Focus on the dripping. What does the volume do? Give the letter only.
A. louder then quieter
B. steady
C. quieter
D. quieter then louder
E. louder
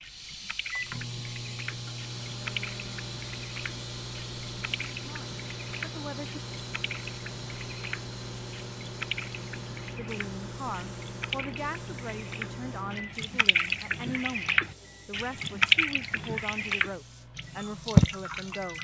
E.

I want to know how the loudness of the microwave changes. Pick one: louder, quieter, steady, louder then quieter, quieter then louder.
quieter.